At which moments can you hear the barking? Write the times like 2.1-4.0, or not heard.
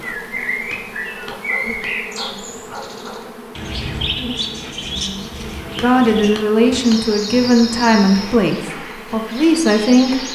1.3-3.4.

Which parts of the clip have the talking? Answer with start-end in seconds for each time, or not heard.
5.8-10.3.